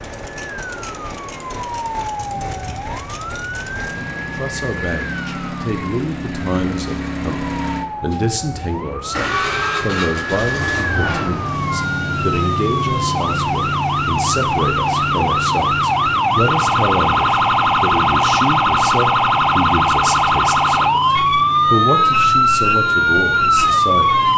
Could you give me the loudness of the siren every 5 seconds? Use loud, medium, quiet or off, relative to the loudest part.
quiet, quiet, medium, loud, loud.